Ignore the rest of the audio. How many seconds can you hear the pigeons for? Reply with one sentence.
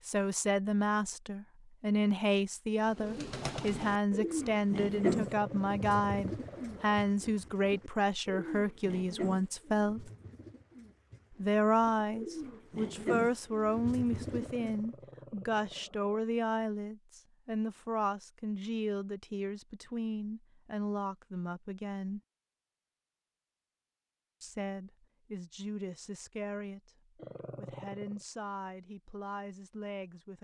You can hear the pigeons for 12 seconds altogether.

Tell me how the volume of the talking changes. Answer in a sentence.
The loudness of the talking goes down.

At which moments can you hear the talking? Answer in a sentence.
You can hear the talking from 0.1 to 10.1 s, from 11.3 to 22.2 s and from 24.4 to 30.4 s.